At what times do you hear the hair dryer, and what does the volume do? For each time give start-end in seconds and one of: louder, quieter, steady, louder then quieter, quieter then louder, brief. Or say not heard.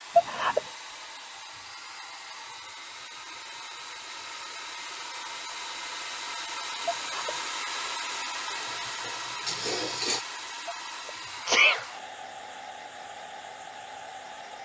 0.0-14.6 louder then quieter.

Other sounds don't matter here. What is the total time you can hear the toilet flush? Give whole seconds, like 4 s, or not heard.
2 s.